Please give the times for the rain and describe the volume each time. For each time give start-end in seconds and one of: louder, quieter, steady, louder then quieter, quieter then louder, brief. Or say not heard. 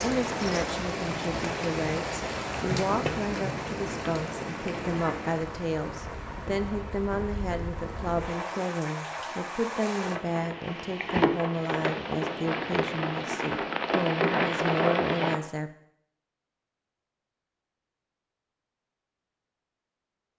0.0-15.4 quieter then louder.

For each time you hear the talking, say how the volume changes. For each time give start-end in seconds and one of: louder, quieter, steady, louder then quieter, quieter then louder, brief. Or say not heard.
0.0-15.7 steady.